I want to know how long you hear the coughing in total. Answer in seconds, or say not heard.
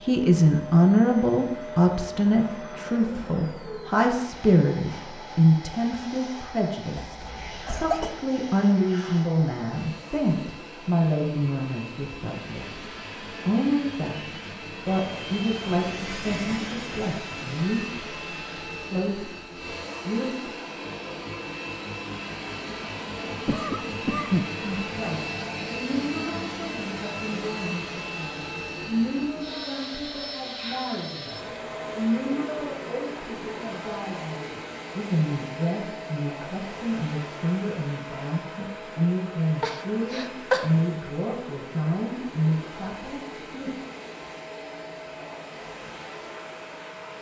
3 s.